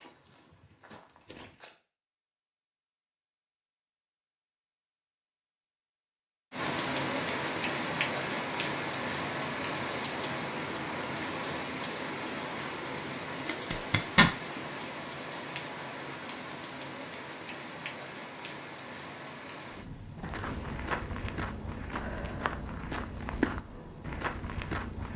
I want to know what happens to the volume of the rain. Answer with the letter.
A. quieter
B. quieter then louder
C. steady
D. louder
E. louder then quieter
A.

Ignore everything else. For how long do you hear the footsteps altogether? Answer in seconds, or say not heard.
7 s.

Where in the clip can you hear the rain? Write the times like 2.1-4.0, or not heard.
6.5-25.1.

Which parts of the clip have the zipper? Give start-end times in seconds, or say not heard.
13.4-14.3.